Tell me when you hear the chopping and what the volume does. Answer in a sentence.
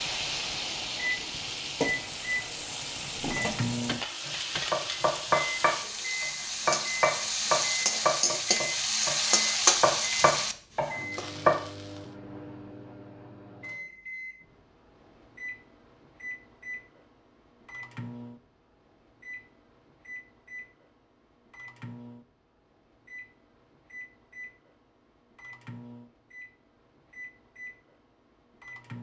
You can hear the chopping from 4.2 to 11.6 s, at a steady volume.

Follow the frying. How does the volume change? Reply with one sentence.
The volume of the frying goes up.